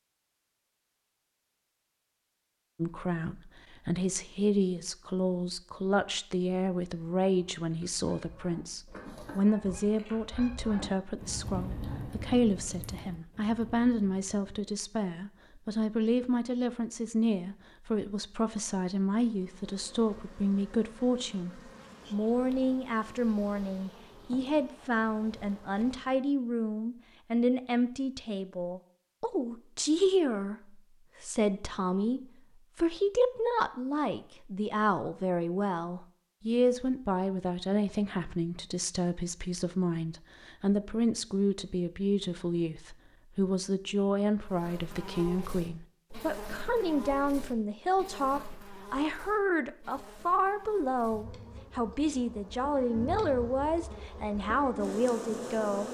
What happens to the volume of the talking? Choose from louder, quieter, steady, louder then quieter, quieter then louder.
steady.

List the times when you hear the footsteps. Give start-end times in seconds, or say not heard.
not heard.